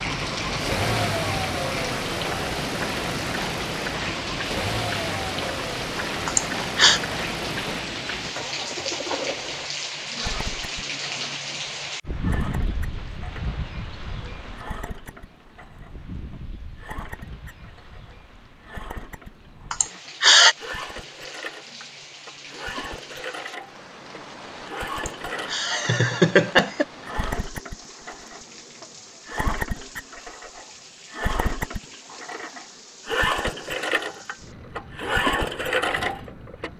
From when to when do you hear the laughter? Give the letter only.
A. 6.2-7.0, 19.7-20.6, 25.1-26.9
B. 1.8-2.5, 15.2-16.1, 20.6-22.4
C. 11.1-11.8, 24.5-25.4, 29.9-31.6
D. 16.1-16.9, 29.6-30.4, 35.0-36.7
A.